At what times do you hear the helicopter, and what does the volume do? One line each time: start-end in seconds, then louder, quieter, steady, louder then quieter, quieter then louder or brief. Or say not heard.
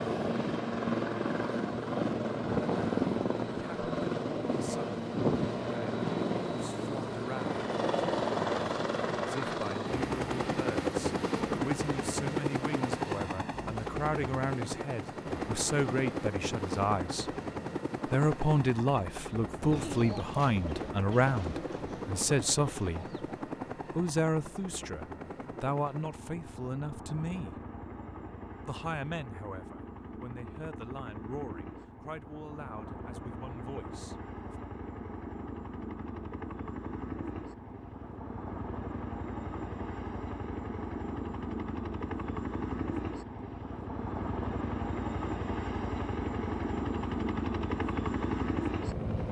0.0-49.2 quieter then louder.